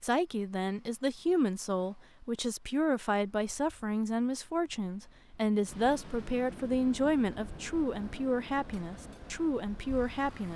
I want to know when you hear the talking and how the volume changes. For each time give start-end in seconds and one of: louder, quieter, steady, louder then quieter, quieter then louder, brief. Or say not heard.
0.0-10.5 steady.